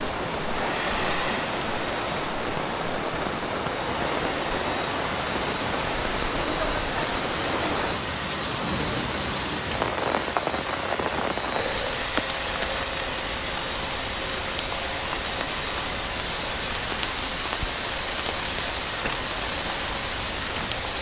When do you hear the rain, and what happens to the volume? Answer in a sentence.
You can hear the rain from 0.0 to 20.9 s, at a steady volume.